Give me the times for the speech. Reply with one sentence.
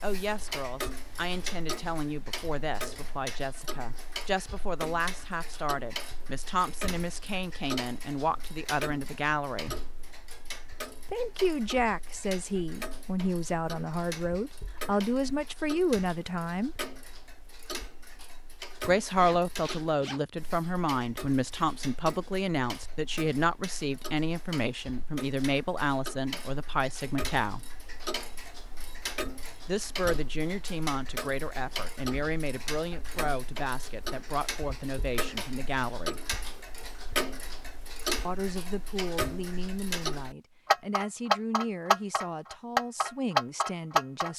You can hear the speech from 0.0 to 9.8 s, from 11.1 to 16.8 s, from 18.9 to 27.6 s, from 29.6 to 36.2 s and from 38.2 to 44.3 s.